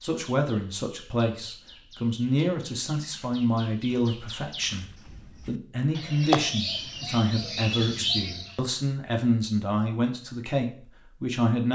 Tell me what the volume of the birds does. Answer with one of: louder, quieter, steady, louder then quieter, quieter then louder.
louder.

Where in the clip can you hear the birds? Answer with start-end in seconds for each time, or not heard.
0.1-8.7.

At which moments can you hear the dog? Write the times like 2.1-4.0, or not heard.
not heard.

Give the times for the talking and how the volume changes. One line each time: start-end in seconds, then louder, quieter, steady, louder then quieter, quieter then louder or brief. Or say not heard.
0.0-11.7 steady.